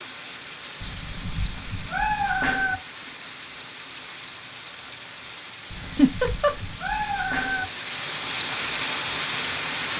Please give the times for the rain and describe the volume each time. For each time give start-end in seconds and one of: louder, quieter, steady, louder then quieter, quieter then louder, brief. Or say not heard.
0.0-9.9 louder.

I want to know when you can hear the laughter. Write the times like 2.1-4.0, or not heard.
5.8-6.5.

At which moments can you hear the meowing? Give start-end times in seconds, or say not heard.
0.8-2.8, 5.7-7.7.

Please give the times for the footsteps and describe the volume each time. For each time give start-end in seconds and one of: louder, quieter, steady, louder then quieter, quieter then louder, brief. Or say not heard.
not heard.